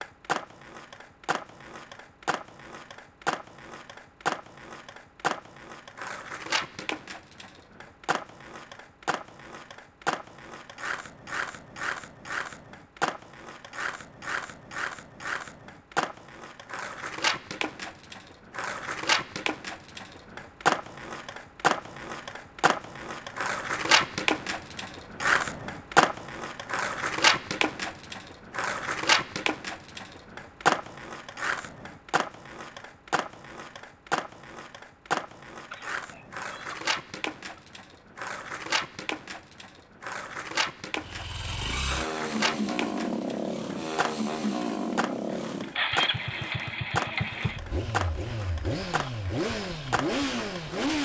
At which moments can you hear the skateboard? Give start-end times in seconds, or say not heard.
0.0-50.9.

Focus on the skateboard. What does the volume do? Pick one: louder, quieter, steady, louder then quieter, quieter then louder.
louder then quieter.